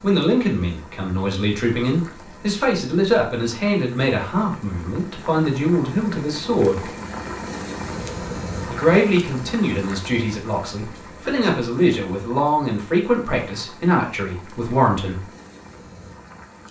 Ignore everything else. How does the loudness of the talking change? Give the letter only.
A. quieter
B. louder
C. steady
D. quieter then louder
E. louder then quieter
C.